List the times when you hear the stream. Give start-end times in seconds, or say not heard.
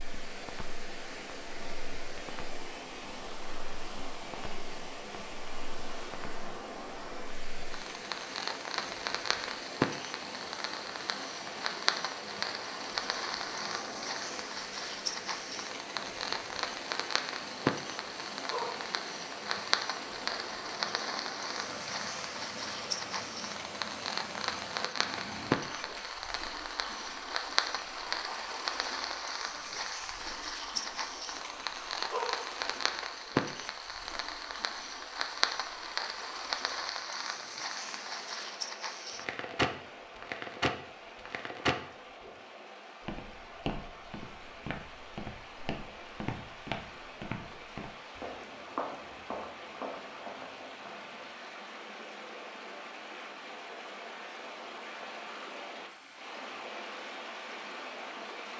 0.0-58.5.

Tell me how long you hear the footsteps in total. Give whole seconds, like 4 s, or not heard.
8 s.